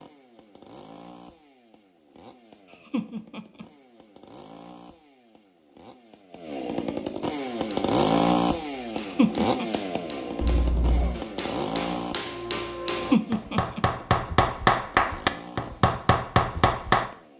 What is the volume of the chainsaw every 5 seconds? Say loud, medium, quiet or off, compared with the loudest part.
quiet, loud, medium, quiet.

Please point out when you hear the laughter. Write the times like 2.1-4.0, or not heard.
2.7-3.6, 8.9-9.7, 12.9-13.8.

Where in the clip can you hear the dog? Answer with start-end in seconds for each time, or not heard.
not heard.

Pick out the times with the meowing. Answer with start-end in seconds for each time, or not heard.
10.4-11.2.